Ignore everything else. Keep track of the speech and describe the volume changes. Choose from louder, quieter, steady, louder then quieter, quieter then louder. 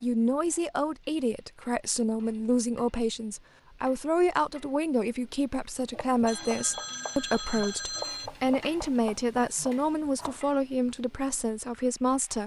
steady.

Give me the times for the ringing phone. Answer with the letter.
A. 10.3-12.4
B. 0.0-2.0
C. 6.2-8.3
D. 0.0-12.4
C.